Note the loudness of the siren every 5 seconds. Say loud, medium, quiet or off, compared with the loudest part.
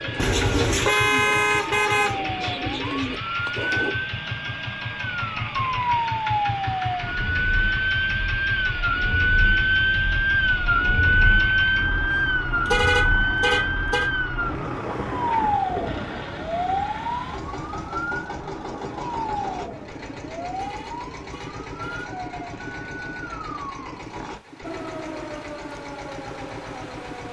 medium, loud, loud, medium, quiet, quiet.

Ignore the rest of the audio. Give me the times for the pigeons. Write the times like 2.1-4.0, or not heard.
0.0-4.0.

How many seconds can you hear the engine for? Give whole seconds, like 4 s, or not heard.
27 s.